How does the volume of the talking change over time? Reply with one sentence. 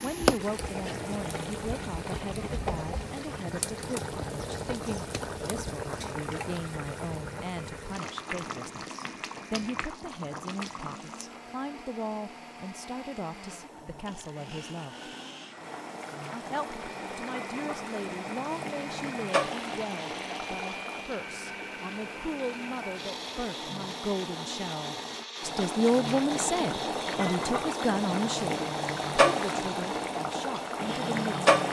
The loudness of the talking goes up.